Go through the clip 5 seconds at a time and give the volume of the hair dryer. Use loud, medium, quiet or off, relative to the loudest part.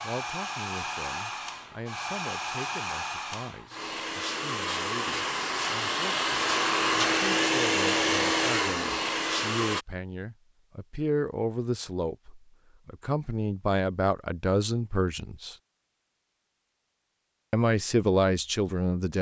medium, loud, off, off.